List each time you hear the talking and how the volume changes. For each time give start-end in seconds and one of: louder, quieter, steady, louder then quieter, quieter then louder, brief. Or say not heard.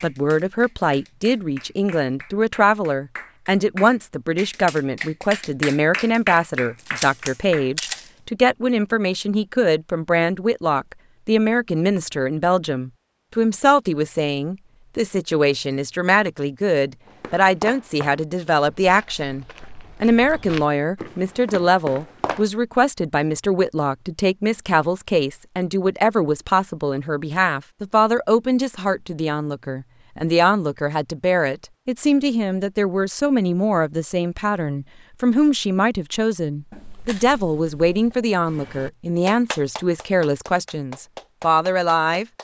0.0-42.2 steady.